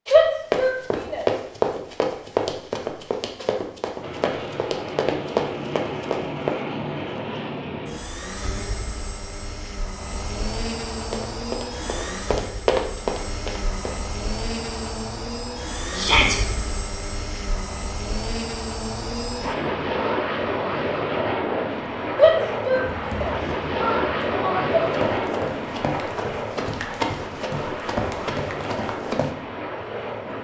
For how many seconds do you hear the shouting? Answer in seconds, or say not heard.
4 s.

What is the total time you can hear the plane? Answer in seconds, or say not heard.
26 s.